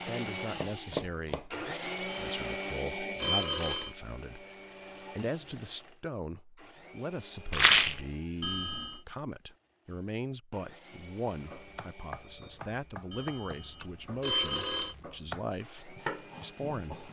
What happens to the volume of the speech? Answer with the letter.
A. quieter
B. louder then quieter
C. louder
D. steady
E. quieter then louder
D.